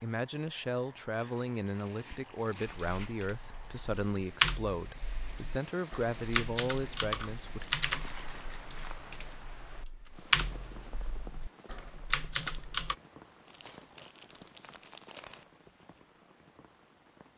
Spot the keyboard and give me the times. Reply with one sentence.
The keyboard can be heard from 2.7 to 12.9 s.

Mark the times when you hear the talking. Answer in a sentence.
You can hear the talking from 0.0 to 7.7 s.